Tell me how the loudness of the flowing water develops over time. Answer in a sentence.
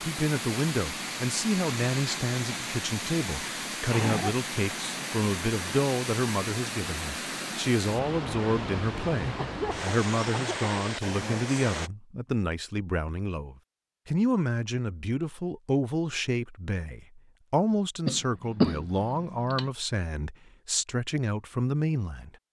The volume of the flowing water stays about the same.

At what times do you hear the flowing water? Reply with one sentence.
The flowing water can be heard from 0.0 to 11.9 s.